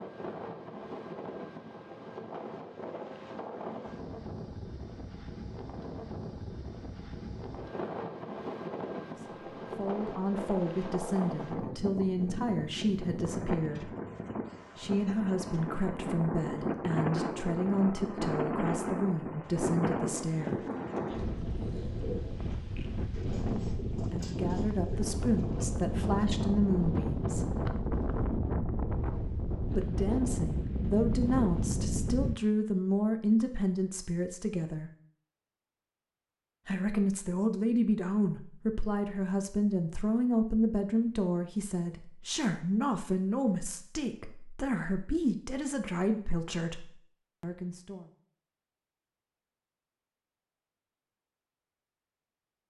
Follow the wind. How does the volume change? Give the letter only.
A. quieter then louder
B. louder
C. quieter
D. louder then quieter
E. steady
B.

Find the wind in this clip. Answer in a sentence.
You can hear the wind from 0.0 to 32.4 s.